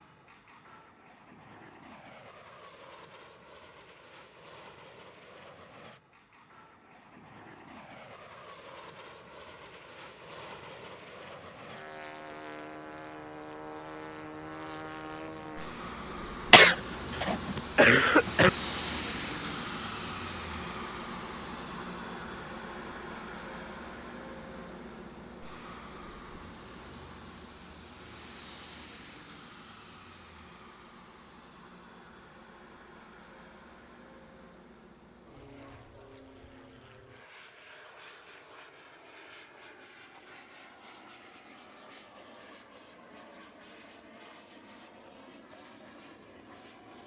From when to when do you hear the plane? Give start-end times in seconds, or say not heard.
0.0-47.0.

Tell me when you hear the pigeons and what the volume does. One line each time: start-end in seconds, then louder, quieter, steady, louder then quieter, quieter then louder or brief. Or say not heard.
not heard.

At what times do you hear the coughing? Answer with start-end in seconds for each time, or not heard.
16.5-18.5.